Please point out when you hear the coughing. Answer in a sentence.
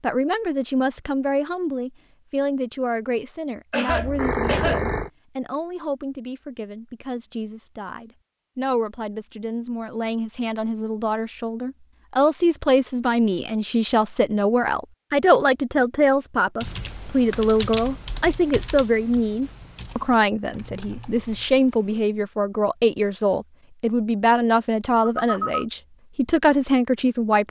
The coughing can be heard from 3.7 to 4.8 s.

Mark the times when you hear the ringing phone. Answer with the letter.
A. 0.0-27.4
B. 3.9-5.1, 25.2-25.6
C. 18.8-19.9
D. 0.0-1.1
B.